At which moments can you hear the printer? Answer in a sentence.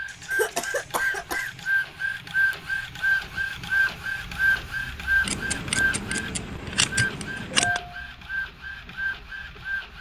You can hear the printer from 0.0 to 9.9 s.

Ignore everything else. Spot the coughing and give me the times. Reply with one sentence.
You can hear the coughing from 0.3 to 1.5 s.